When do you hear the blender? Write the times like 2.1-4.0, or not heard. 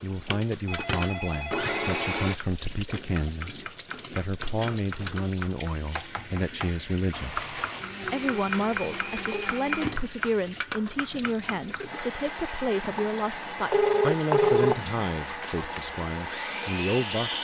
0.0-2.4, 7.1-9.9, 15.6-17.3.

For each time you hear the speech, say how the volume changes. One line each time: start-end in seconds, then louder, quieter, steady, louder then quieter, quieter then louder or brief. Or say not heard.
0.0-17.3 steady.